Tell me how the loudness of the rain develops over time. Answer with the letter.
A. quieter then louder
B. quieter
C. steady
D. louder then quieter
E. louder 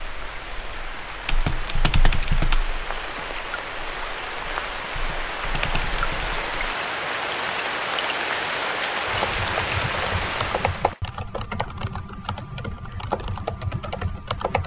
E.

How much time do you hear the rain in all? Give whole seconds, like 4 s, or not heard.
11 s.